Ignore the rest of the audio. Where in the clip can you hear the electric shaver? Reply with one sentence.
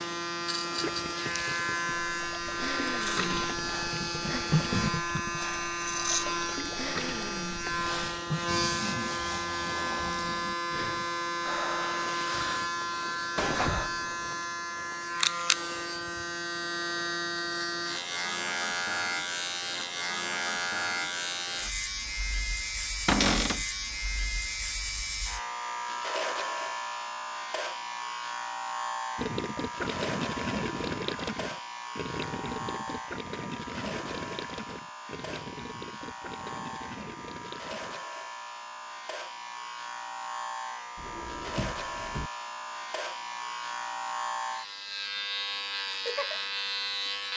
You can hear the electric shaver from 0.0 to 47.3 s.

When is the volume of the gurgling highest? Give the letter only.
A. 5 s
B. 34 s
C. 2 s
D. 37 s
A.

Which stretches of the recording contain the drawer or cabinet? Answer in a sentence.
The drawer or cabinet can be heard from 13.3 to 14.1 s, from 23.1 to 23.6 s and from 41.0 to 42.3 s.